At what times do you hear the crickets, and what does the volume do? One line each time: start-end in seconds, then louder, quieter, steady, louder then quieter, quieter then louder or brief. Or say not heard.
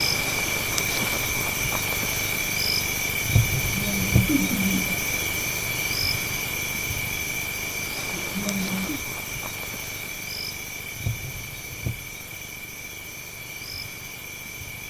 0.0-14.8 quieter.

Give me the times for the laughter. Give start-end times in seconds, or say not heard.
3.6-5.0, 8.1-9.0.